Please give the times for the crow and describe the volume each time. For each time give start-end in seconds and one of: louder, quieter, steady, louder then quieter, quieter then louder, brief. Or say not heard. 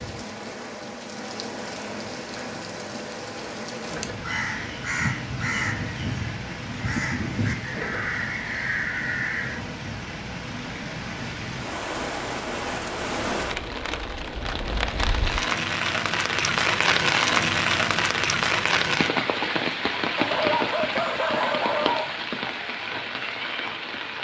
3.9-9.6 steady.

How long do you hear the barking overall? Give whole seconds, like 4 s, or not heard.
2 s.